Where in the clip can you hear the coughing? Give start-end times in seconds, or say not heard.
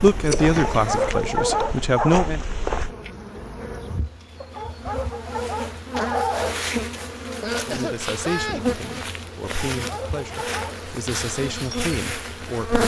0.1-1.1, 7.4-8.8.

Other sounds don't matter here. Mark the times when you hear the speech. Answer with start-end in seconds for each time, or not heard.
0.0-2.4, 7.7-12.8.